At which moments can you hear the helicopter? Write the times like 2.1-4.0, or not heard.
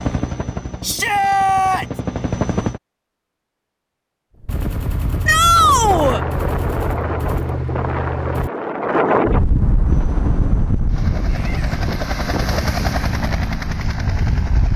0.0-2.8, 9.8-14.7.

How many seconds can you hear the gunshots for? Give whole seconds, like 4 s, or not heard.
4 s.